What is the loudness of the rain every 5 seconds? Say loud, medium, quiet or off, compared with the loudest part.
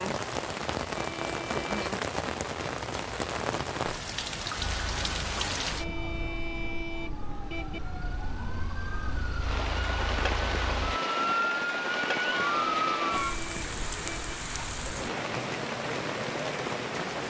loud, medium, loud, loud.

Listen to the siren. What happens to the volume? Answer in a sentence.
The volume of the siren goes up.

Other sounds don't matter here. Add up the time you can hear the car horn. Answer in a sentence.
You can hear the car horn for 5 seconds altogether.